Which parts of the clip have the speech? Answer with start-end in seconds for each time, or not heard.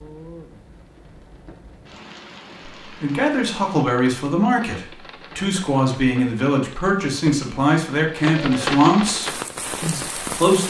2.8-10.6.